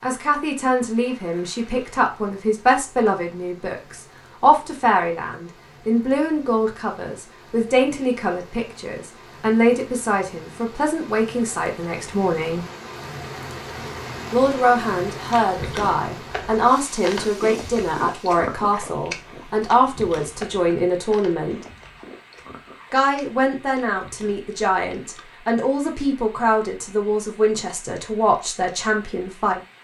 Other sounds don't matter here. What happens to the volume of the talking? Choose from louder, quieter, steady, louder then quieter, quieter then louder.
steady.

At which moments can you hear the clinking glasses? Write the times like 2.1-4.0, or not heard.
not heard.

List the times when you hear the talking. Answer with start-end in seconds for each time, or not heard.
0.0-12.7, 14.3-21.6, 22.9-29.6.